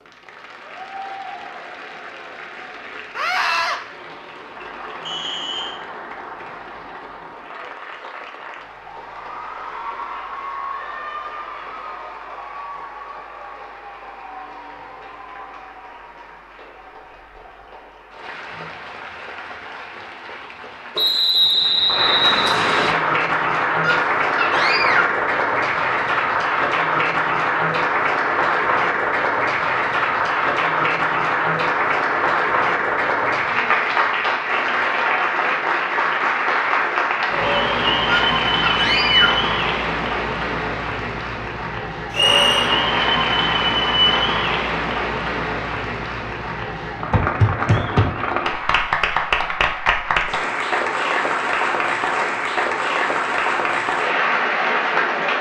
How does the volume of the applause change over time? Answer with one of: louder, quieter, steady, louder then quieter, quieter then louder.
louder.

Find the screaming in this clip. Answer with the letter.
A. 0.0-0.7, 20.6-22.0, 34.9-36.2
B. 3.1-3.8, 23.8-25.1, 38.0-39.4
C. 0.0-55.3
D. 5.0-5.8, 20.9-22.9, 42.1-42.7
B.